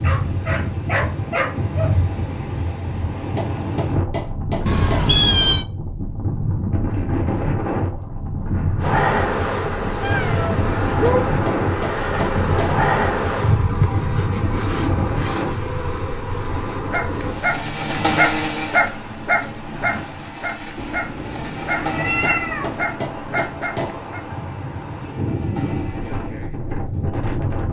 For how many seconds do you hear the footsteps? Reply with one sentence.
The footsteps can't be heard in this clip.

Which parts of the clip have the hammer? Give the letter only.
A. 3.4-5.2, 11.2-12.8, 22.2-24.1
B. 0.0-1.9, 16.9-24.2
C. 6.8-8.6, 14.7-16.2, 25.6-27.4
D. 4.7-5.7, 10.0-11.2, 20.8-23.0
A.